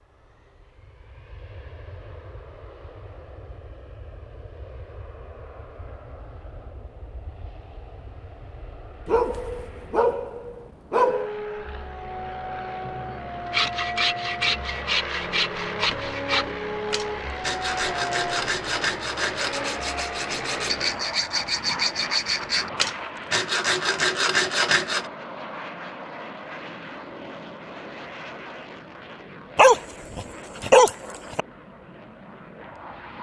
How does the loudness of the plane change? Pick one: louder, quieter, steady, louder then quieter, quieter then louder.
louder then quieter.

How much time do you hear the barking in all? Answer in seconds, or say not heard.
4 s.